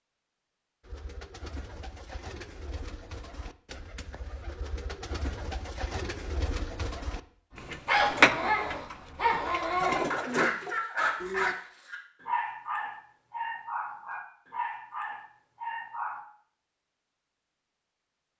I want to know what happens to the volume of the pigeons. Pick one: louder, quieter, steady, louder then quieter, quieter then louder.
louder then quieter.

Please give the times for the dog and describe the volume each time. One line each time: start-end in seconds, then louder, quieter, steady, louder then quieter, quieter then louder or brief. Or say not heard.
7.5-16.2 quieter.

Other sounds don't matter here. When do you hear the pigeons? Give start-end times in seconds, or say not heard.
0.8-11.6.